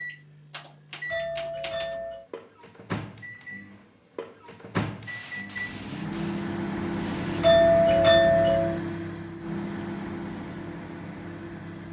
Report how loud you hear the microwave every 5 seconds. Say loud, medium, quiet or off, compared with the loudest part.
medium, loud, medium.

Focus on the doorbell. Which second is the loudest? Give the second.
8 s.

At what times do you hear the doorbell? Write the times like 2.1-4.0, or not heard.
1.1-2.2, 7.4-8.8.